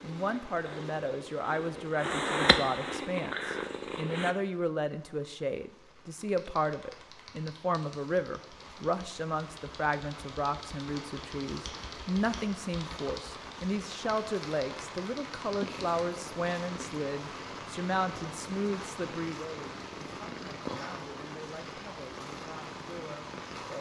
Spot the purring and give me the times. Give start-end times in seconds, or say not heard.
0.0-4.3, 15.4-23.7.